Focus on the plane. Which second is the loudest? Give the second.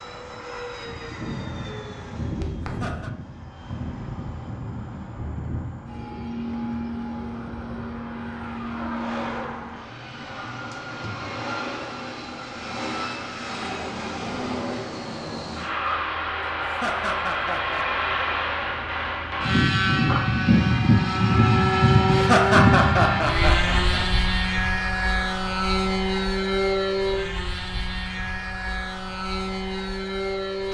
22 s.